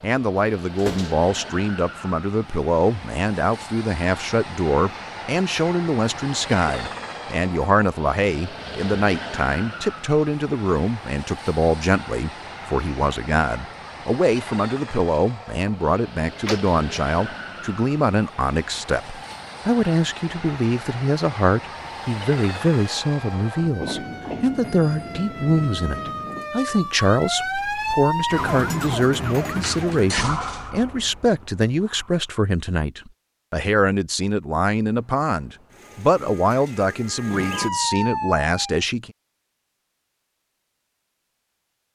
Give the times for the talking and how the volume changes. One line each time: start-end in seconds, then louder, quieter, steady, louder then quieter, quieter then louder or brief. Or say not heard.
0.0-39.1 steady.